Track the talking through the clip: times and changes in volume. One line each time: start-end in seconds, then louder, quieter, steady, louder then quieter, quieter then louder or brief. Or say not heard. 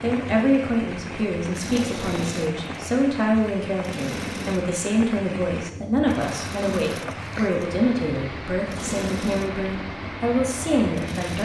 0.0-11.4 steady.